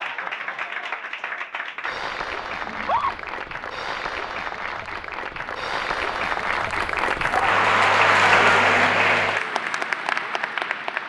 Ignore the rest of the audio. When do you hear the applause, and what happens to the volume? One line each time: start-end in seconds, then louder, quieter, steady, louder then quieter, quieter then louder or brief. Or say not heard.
0.0-11.0 louder.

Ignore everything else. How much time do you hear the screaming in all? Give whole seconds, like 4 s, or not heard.
2 s.